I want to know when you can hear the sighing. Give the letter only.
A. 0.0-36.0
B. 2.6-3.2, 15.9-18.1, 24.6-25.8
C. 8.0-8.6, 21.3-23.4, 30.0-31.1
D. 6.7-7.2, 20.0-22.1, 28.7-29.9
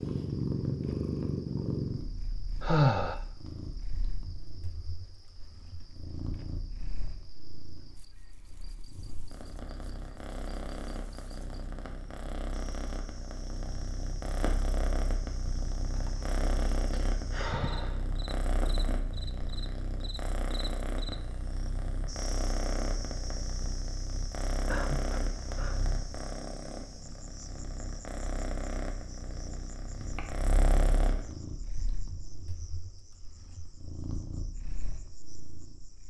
B.